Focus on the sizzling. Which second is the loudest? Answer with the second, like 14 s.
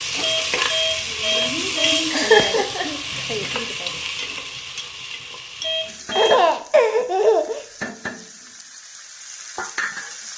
2 s.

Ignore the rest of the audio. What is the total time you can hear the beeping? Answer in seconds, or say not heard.
3 s.